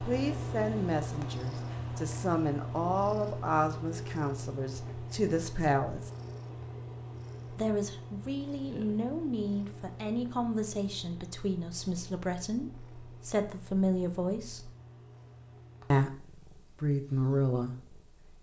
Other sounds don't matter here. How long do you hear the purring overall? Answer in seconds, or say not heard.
18 s.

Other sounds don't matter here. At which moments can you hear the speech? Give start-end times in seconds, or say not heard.
0.0-6.1, 7.5-14.7, 15.9-17.9.